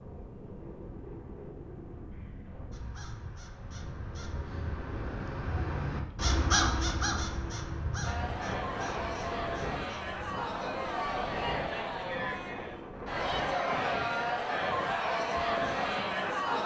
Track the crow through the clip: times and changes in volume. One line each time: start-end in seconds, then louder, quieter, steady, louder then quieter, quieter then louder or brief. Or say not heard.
2.7-10.2 louder then quieter.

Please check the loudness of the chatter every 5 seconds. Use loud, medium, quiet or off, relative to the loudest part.
off, medium, loud, loud.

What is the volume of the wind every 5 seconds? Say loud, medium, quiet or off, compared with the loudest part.
medium, loud, loud, loud.